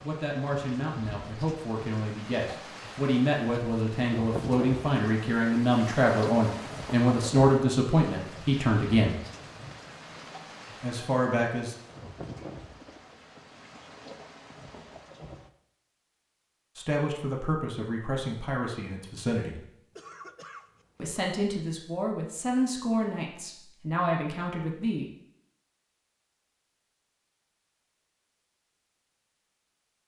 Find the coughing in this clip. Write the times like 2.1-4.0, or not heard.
19.9-21.1.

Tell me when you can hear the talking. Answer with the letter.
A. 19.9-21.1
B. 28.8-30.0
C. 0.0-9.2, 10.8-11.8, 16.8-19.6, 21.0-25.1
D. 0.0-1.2
C.